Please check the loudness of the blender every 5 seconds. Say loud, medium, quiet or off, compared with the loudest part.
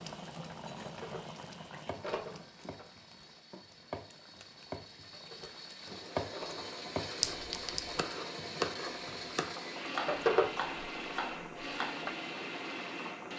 quiet, loud, loud.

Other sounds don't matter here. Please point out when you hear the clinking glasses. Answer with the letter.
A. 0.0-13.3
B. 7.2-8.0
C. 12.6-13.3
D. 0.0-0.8
B.